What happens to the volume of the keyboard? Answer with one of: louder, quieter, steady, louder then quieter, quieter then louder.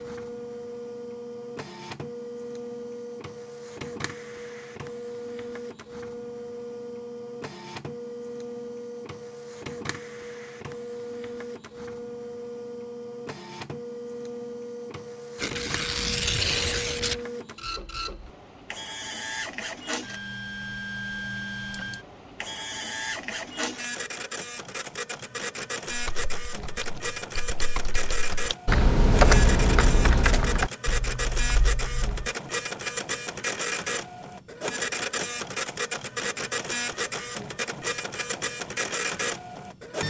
louder then quieter.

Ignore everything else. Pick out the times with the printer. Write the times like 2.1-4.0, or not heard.
0.0-40.0.